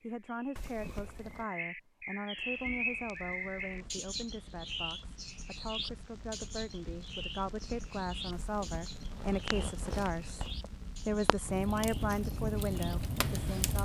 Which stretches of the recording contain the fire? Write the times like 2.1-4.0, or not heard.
2.4-13.7.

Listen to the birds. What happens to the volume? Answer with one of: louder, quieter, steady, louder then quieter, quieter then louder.
quieter.